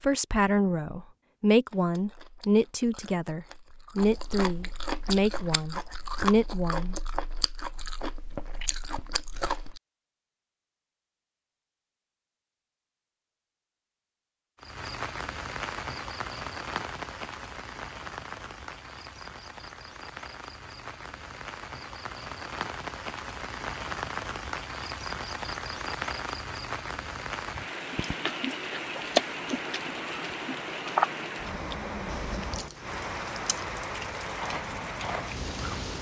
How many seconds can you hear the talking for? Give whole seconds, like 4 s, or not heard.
7 s.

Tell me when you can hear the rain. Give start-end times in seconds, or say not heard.
14.6-35.9.